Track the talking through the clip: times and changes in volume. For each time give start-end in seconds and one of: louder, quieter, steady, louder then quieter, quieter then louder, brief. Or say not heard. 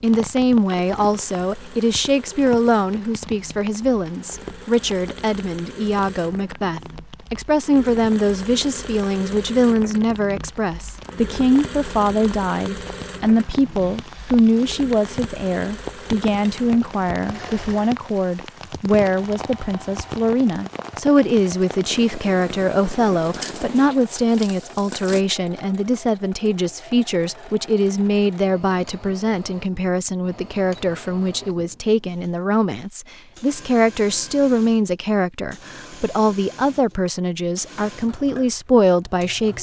0.0-39.5 steady.